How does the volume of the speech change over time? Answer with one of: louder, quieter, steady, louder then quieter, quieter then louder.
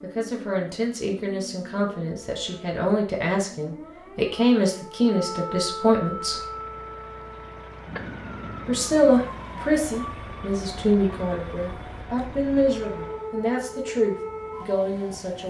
louder then quieter.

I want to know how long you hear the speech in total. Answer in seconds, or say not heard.
13 s.